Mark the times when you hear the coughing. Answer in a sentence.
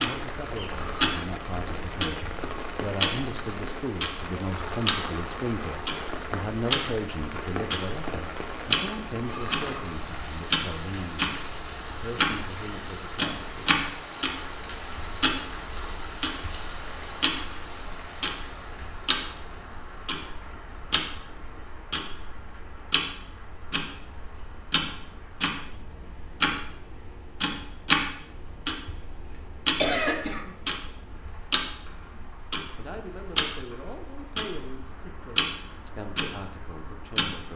The coughing can be heard from 29.2 to 30.5 s.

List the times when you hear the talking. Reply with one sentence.
The talking can be heard from 0.0 to 13.8 s and from 32.1 to 37.5 s.